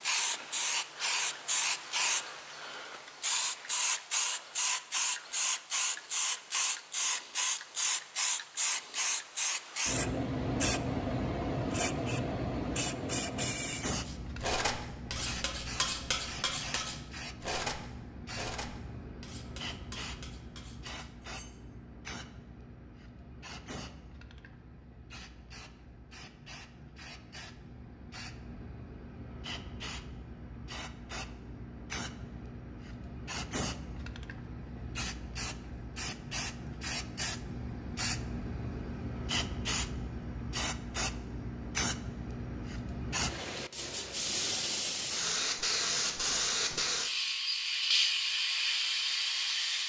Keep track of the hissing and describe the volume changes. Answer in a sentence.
The volume of the hissing goes down, then up.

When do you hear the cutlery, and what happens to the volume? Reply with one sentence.
The cutlery can be heard from 14.1 to 21.6 s, getting quieter.